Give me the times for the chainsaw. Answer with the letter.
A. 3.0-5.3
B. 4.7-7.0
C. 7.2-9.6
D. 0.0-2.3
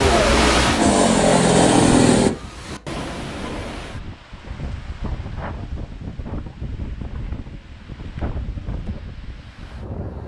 D.